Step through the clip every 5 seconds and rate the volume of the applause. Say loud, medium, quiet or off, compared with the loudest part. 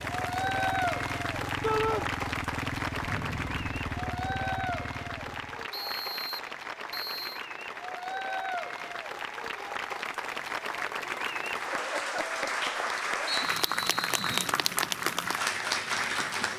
loud, medium, loud, loud.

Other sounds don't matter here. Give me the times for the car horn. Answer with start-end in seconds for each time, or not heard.
not heard.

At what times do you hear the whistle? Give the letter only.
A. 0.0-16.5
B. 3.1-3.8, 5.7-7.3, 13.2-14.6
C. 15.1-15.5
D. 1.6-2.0
B.